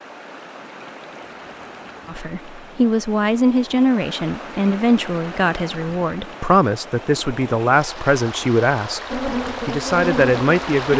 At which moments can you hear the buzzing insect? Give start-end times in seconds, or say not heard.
9.1-10.9.